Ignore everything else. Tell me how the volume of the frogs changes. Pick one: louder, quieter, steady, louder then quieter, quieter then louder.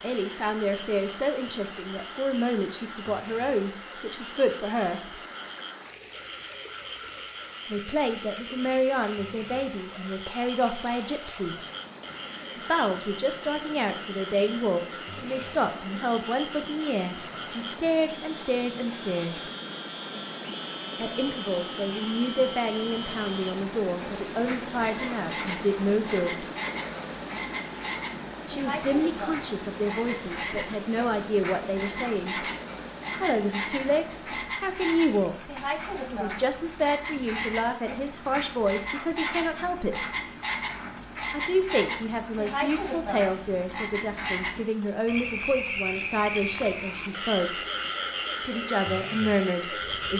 louder.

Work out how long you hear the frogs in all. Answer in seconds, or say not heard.
50 s.